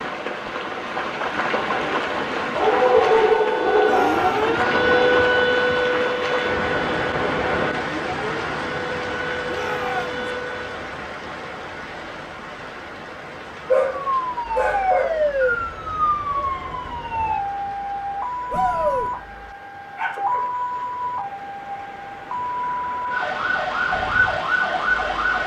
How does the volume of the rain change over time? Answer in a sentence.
The loudness of the rain goes down.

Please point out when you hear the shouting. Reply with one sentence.
You can hear the shouting from 3.8 to 4.5 s, from 9.4 to 10.2 s and from 18.5 to 19.1 s.